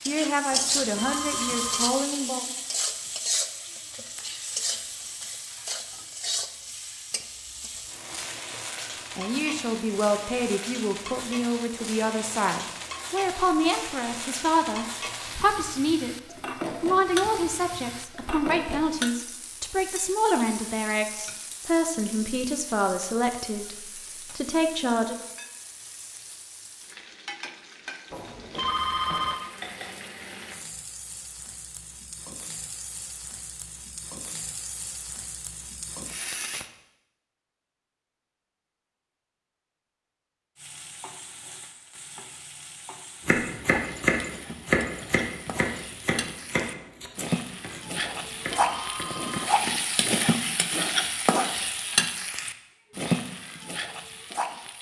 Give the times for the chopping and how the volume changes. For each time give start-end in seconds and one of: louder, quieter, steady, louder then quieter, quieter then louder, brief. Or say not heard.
43.2-50.1 quieter.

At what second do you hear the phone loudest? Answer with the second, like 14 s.
29 s.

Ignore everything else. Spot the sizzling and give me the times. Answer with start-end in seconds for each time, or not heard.
0.0-36.7, 40.5-54.7.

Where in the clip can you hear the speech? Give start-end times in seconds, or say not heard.
0.1-2.5, 9.2-25.2.